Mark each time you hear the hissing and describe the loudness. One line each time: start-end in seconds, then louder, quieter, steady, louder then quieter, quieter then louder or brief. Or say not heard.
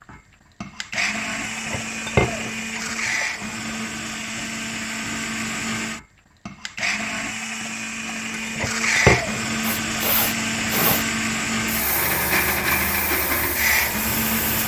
9.6-14.6 steady.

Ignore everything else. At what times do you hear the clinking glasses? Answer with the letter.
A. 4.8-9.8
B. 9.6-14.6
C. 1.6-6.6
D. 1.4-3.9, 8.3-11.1
D.